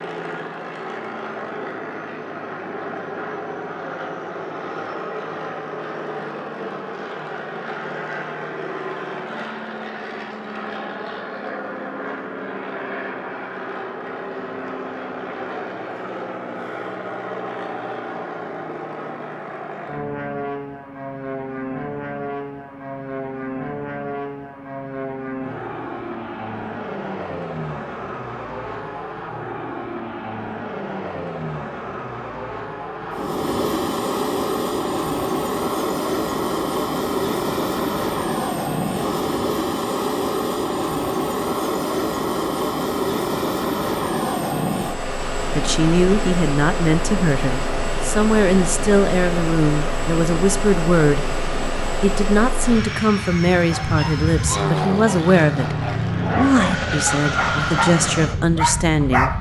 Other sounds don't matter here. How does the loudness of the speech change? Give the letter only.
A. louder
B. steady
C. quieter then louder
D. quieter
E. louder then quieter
B.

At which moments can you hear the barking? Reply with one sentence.
You can hear the barking from 53.7 to 59.3 s.